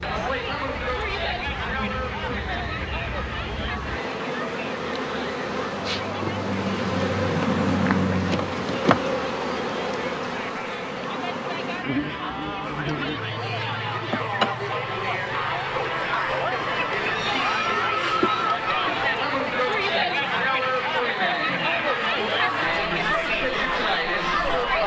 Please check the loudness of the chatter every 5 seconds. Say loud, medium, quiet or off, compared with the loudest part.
medium, quiet, medium, loud, loud.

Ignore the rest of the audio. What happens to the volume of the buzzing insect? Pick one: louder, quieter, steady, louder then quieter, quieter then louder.
louder then quieter.